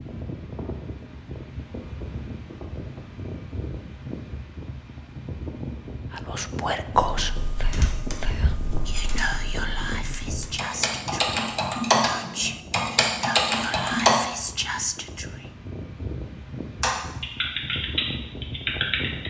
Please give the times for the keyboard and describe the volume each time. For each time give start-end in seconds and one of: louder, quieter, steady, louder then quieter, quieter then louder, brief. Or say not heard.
7.2-14.2 louder
16.8-19.2 brief.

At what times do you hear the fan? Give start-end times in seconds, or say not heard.
0.0-19.2.